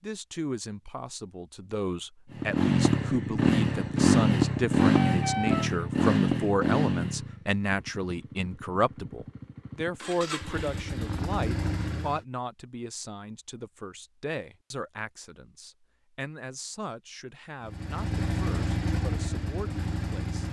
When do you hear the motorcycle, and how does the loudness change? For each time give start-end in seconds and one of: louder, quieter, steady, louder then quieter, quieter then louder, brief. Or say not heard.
2.3-12.2 quieter then louder
17.6-20.4 brief.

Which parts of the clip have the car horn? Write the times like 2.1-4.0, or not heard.
4.8-5.7.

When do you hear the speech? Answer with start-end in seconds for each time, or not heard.
0.0-20.4.